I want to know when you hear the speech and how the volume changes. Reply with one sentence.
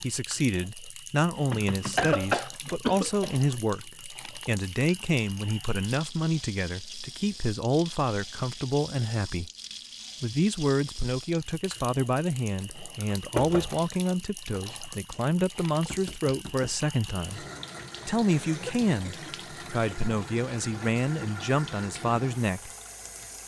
You can hear the speech from 0.0 to 9.5 s, at a steady volume; from 10.2 to 17.4 s, at a steady volume; and from 18.1 to 22.7 s, at a steady volume.